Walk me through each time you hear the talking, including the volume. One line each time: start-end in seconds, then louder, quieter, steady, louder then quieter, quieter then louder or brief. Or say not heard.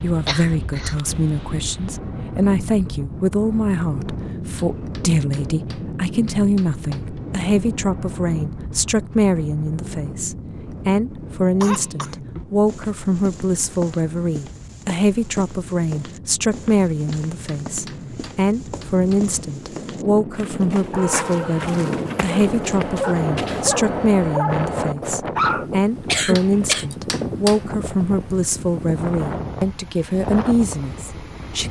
0.0-31.6 steady.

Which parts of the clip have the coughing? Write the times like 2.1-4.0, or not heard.
0.2-0.9, 11.4-12.2, 26.1-26.9.